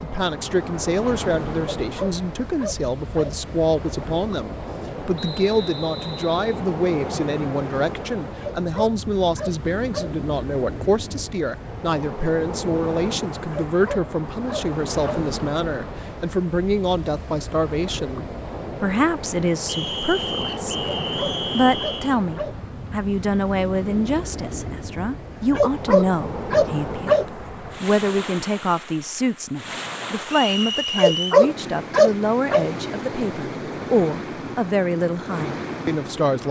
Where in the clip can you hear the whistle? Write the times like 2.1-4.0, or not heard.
5.2-6.6, 19.6-22.2, 30.3-31.4.